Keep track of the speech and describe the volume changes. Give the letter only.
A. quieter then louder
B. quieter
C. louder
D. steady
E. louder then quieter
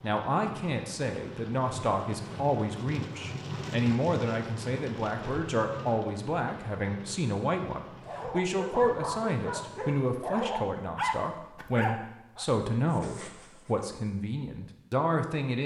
D.